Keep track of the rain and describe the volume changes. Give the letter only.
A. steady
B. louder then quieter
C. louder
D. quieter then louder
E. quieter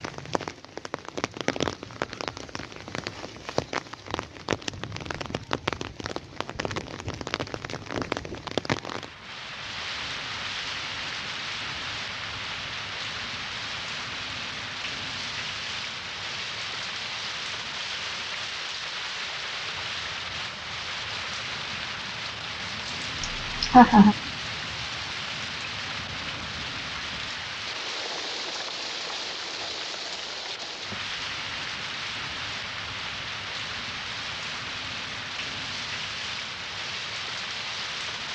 A.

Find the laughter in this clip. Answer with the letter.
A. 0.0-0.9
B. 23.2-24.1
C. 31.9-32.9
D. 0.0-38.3
B.